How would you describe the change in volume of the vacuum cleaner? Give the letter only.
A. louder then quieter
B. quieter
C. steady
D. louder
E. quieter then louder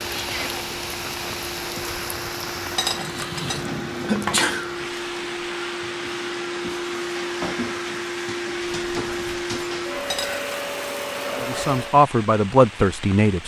D.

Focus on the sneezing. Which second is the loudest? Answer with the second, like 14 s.
4 s.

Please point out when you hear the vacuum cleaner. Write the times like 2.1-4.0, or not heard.
0.0-12.0.